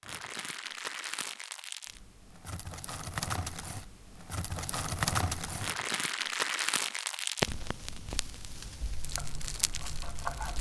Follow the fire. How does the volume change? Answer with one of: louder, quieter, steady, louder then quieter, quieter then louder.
louder then quieter.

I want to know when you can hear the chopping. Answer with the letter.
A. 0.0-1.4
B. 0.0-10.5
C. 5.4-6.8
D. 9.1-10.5
D.